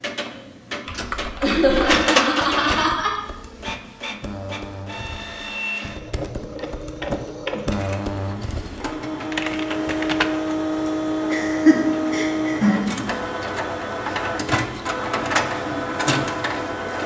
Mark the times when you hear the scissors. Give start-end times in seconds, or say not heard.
not heard.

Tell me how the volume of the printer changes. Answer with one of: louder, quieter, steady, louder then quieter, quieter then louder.
quieter then louder.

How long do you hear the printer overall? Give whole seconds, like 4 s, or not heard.
17 s.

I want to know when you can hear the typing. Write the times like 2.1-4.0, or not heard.
0.8-10.3.